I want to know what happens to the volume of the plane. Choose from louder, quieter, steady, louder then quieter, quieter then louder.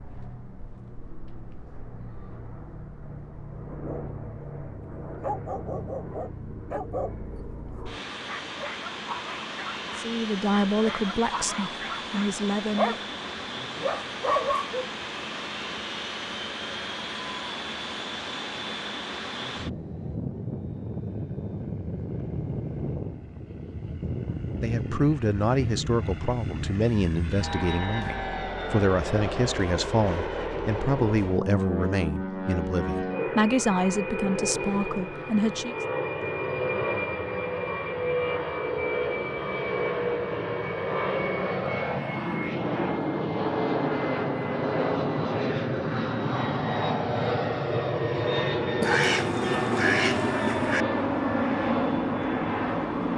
louder.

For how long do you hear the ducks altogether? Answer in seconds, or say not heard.
2 s.